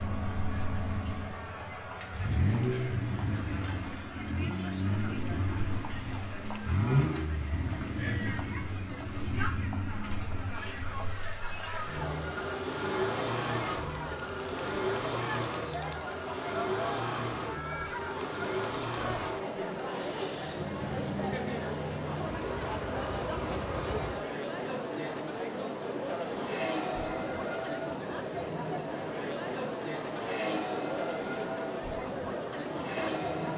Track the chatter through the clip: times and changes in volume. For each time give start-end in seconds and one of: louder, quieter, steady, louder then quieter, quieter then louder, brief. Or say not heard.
0.0-33.5 louder.